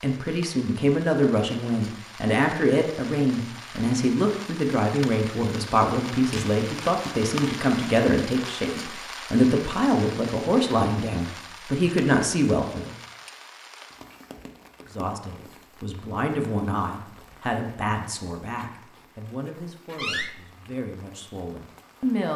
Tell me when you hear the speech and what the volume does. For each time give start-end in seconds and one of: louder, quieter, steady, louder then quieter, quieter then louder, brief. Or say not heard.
0.0-12.9 steady
14.8-22.3 quieter.